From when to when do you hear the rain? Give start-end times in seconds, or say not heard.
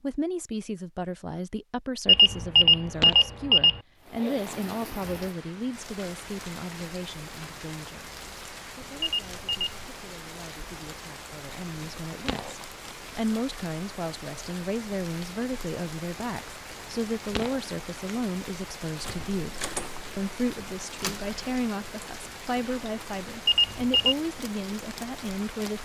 4.0-25.8.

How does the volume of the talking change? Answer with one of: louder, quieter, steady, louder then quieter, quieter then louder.
quieter then louder.